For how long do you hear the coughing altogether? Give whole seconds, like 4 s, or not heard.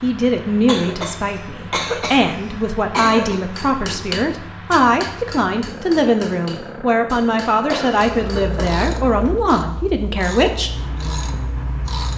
4 s.